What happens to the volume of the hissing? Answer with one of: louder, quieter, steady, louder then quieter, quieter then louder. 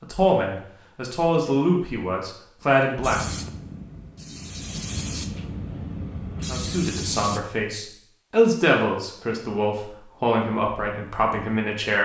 louder.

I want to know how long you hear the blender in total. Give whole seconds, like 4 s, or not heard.
not heard.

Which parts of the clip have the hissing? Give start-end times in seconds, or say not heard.
3.0-7.4.